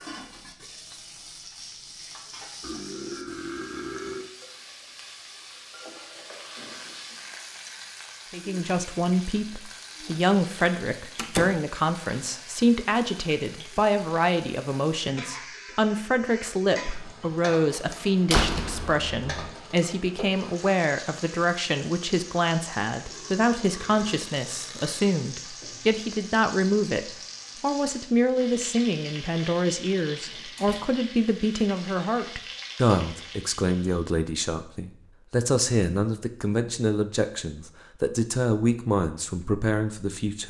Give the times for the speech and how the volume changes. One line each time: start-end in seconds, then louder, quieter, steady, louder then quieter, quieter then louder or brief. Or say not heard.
8.3-40.4 steady.